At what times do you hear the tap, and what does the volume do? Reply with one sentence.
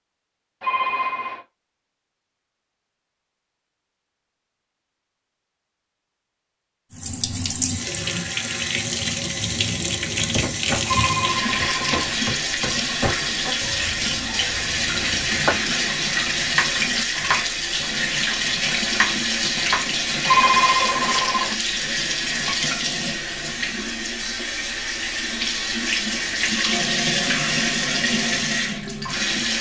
You can hear the tap from 6.9 to 29.5 s, at a steady volume.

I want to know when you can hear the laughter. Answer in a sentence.
The laughter can't be heard in this clip.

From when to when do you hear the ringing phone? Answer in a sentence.
You can hear the ringing phone from 0.6 to 1.4 s, from 10.8 to 12.2 s and from 20.2 to 21.6 s.